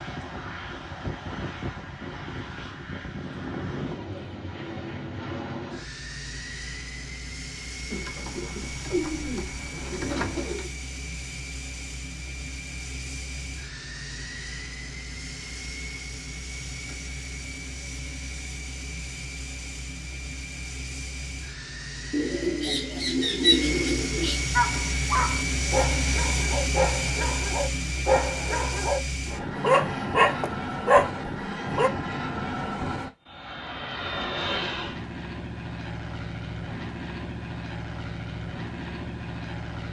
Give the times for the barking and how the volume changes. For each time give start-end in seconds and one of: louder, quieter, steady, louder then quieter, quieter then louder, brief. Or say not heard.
24.6-31.9 louder.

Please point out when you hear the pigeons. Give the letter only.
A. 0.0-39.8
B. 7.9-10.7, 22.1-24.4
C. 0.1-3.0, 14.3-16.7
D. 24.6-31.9
B.